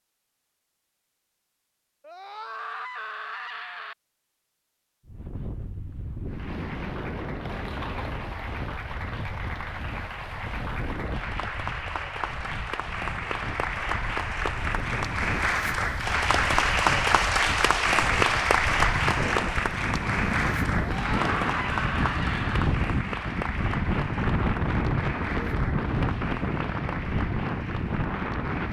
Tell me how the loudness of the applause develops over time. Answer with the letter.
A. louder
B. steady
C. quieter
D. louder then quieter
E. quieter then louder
D.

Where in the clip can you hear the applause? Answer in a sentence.
The applause can be heard from 6.2 to 28.6 s.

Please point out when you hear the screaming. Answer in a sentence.
The screaming can be heard from 2.0 to 4.0 s and from 20.9 to 22.7 s.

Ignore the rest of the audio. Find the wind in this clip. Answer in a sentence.
You can hear the wind from 5.0 to 28.6 s.